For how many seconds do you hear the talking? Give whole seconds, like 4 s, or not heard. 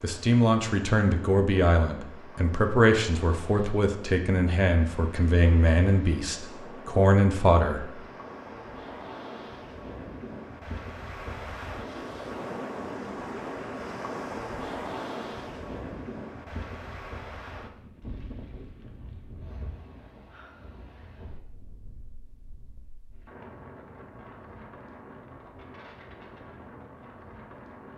8 s.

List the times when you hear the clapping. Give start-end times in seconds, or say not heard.
not heard.